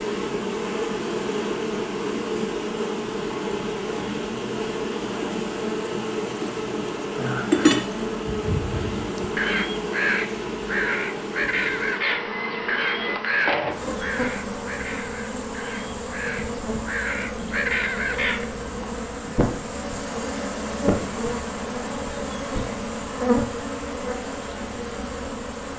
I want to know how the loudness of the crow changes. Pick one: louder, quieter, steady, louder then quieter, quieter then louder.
quieter then louder.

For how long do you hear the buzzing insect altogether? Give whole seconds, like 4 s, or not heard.
26 s.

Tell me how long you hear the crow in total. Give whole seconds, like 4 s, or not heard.
10 s.